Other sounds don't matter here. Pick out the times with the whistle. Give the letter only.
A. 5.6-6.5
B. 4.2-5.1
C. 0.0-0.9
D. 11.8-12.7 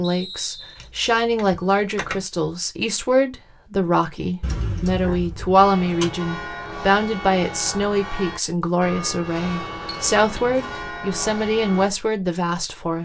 C.